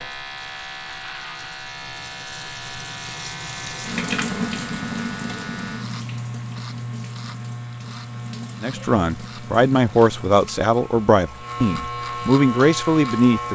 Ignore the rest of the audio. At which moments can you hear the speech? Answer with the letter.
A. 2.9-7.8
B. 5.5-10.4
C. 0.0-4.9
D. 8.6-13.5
D.